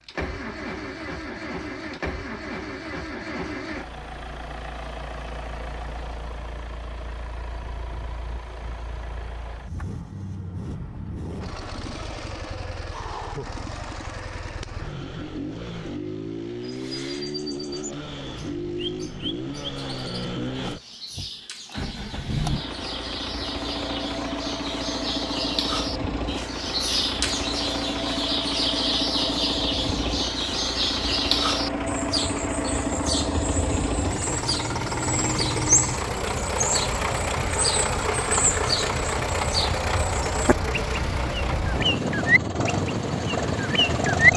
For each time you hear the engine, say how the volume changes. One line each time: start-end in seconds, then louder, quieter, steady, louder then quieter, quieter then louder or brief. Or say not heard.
0.0-44.3 louder.